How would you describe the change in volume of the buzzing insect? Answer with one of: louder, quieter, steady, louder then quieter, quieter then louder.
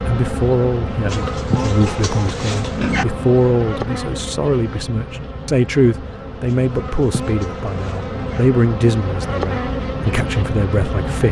quieter then louder.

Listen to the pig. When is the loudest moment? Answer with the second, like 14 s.
3 s.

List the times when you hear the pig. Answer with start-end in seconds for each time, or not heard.
1.1-3.0, 6.5-8.4.